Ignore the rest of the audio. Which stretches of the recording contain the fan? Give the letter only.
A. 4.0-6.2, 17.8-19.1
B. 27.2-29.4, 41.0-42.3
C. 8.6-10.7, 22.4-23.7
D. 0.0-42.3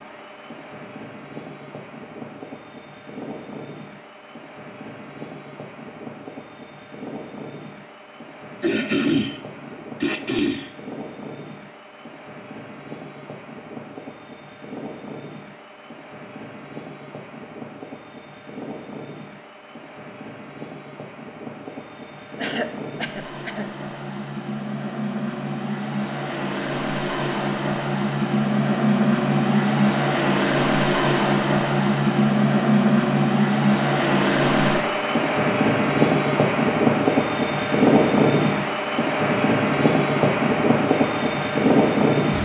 D.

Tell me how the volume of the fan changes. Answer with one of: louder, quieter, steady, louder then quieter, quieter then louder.
louder.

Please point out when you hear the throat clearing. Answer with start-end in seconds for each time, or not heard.
8.6-10.7, 22.4-23.7.